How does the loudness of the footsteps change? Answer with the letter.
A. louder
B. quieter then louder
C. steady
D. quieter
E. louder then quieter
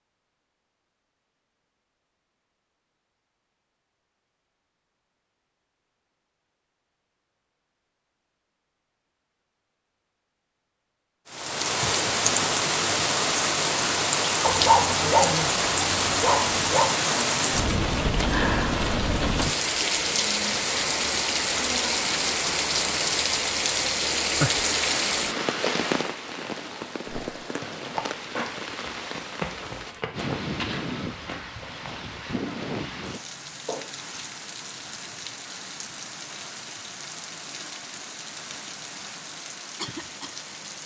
D.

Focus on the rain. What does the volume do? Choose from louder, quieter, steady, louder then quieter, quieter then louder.
quieter.